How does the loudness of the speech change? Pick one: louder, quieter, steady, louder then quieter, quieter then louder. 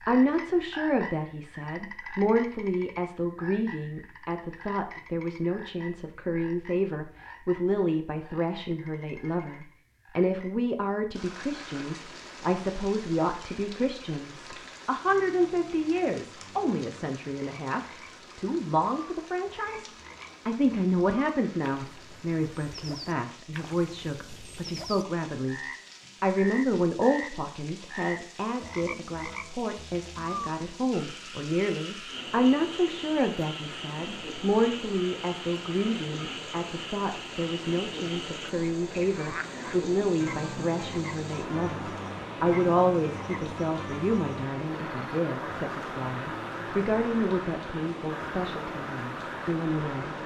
steady.